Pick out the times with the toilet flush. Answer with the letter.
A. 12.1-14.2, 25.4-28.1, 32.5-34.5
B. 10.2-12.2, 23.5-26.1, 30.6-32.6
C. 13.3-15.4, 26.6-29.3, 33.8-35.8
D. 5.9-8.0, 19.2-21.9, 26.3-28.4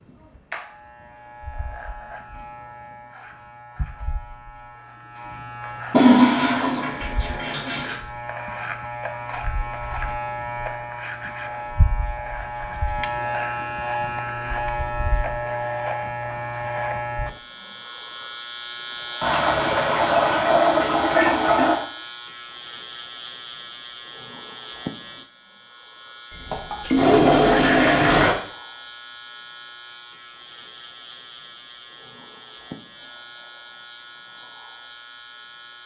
D.